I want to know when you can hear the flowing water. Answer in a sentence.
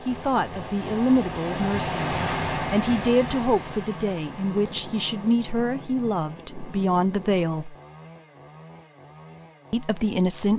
The flowing water can be heard from 0.0 to 5.3 s.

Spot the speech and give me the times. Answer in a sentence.
The speech can be heard from 0.0 to 7.8 s and from 9.7 to 10.5 s.